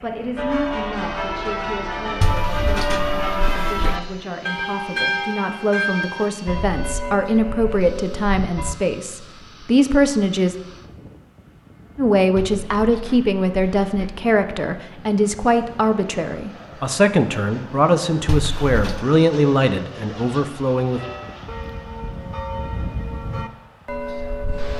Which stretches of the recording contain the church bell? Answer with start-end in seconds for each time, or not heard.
0.3-8.8, 20.9-24.7.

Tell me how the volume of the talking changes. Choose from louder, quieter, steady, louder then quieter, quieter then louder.
louder.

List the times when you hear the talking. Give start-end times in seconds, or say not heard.
0.0-10.6, 11.9-21.0.